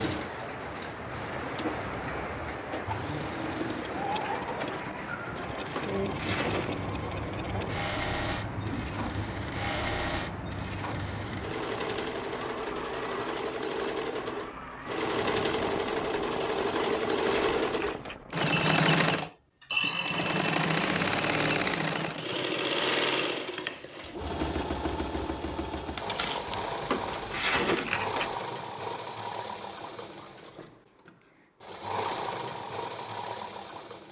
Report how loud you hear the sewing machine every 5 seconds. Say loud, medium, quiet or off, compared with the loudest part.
medium, medium, medium, loud, loud, medium, medium.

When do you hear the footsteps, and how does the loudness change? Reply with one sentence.
The footsteps can't be heard in this clip.